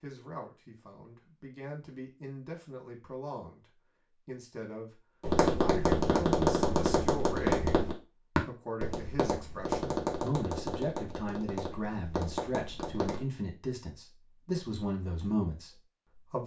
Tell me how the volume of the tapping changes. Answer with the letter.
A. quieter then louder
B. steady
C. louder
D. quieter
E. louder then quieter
D.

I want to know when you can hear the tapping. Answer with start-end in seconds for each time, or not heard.
5.2-13.2.